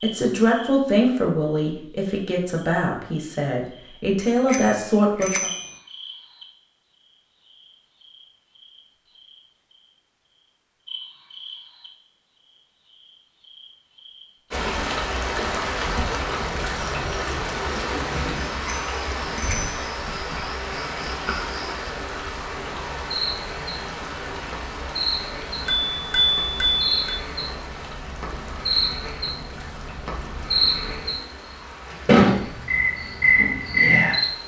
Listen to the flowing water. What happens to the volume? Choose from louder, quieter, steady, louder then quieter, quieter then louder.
quieter.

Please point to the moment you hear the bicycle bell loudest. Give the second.
26 s.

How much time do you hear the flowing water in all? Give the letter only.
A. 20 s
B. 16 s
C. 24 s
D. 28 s
A.